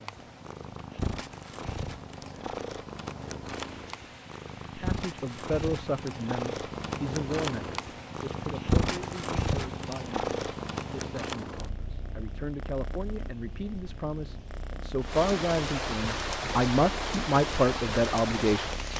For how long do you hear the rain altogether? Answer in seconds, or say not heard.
19 s.